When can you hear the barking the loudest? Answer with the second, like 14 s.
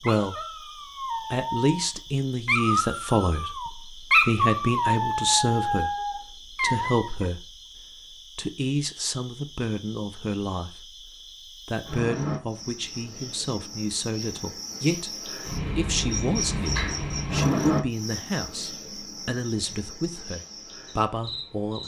4 s.